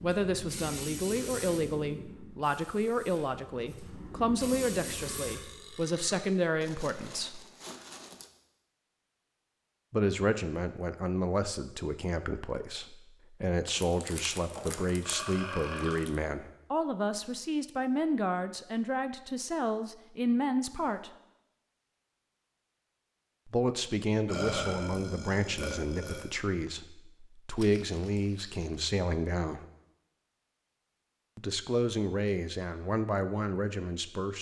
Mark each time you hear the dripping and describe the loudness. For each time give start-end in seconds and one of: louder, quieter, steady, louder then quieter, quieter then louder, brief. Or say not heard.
not heard.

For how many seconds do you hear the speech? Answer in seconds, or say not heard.
28 s.